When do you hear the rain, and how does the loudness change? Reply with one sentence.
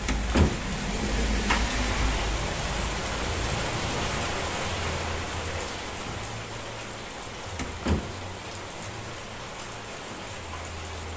The rain can be heard from 0.0 to 11.1 s, getting quieter.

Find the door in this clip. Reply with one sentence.
You can hear the door from 0.1 to 1.6 s and from 7.5 to 8.2 s.